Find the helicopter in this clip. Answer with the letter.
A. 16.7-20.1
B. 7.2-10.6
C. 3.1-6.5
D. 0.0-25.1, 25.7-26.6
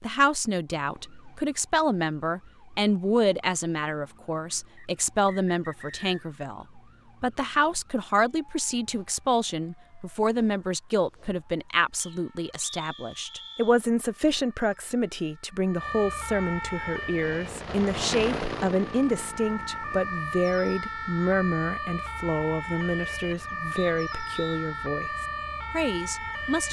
A.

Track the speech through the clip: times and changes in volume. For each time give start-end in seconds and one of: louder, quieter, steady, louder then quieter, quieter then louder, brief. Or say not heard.
0.0-25.1 steady
25.7-26.6 brief.